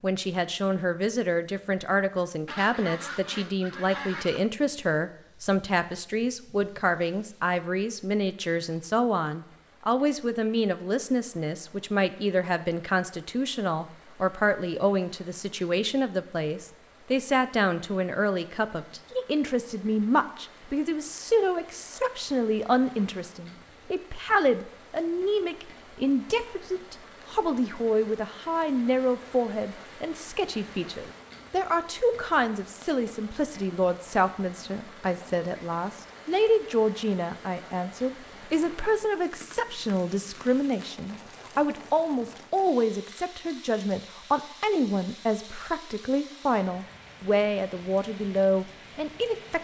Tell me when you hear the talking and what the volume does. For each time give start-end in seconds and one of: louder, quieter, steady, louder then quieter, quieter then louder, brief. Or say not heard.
0.0-49.6 steady.